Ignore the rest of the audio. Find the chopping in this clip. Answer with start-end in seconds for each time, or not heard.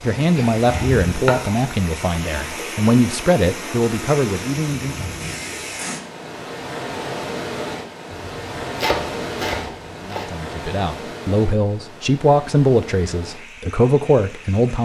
0.3-1.6, 8.1-10.3.